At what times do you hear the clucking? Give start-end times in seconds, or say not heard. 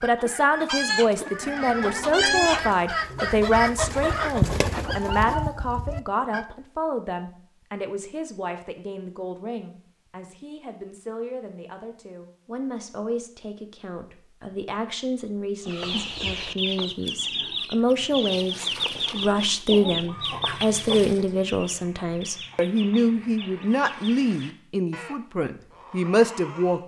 0.0-6.5, 15.7-26.8.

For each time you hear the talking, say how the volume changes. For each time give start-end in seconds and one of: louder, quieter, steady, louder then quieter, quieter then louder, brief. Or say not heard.
0.0-26.8 quieter then louder.